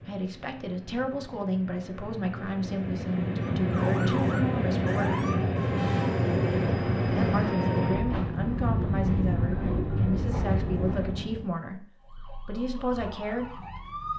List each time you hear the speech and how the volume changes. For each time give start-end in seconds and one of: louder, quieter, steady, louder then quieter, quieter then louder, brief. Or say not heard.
0.1-5.2 steady
7.0-13.6 steady.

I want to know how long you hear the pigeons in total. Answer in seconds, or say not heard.
not heard.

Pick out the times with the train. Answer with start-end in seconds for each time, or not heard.
0.0-11.5.